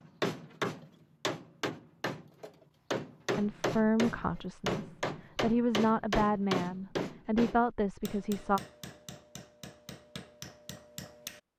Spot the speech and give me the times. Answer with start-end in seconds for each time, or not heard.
3.4-8.6.